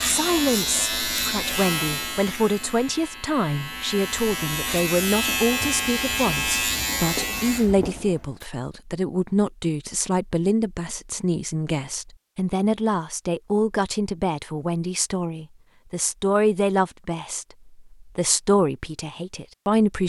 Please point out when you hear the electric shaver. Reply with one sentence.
The electric shaver can be heard from 0.0 to 8.4 s.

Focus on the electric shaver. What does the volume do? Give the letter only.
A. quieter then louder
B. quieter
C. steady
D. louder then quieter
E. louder
A.